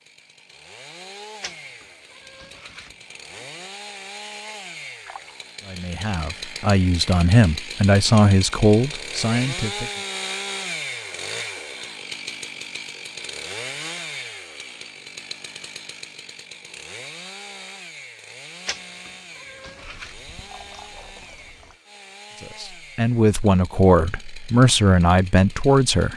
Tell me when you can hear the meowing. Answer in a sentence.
You can hear the meowing from 1.4 to 3.0 s and from 18.6 to 20.1 s.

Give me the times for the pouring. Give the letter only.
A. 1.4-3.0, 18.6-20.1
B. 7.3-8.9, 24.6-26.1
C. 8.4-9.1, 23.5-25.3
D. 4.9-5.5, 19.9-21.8
D.